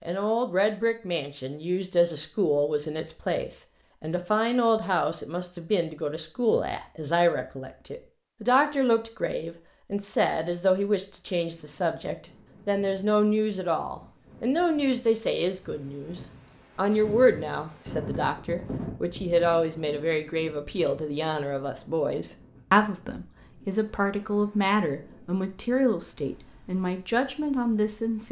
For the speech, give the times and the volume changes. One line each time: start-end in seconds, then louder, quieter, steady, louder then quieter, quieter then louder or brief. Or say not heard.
0.0-28.2 steady.